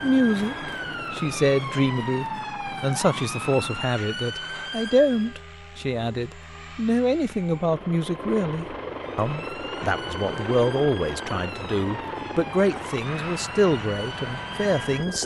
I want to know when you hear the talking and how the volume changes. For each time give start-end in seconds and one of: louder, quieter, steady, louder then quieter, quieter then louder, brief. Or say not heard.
0.0-15.2 steady.